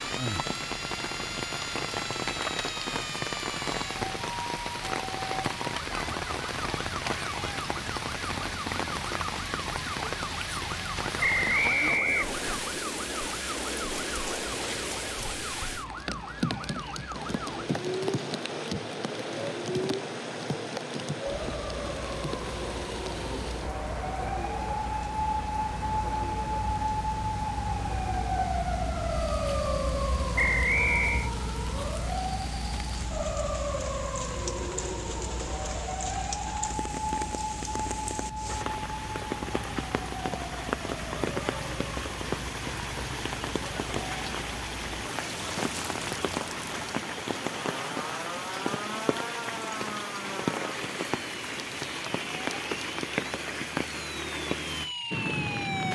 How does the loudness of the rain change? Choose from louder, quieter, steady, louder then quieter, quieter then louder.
quieter then louder.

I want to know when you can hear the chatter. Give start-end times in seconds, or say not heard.
not heard.